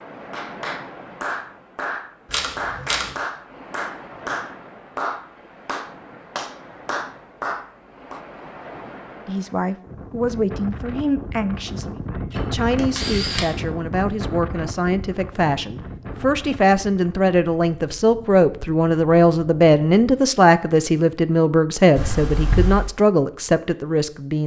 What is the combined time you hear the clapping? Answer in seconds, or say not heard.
8 s.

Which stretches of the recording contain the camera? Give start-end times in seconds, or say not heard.
2.2-3.1, 12.3-13.6, 21.9-22.9.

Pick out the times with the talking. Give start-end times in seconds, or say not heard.
9.2-24.4.